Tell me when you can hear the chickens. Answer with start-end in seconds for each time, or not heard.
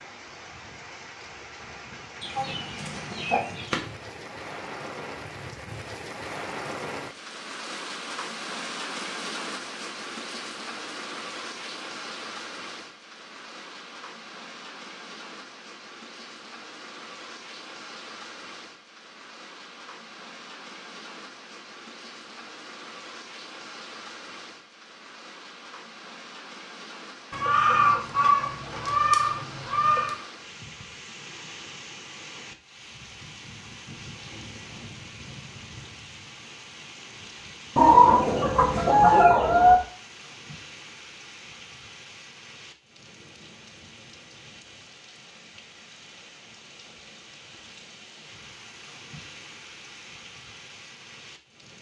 2.2-3.8, 27.3-30.1, 37.8-39.8.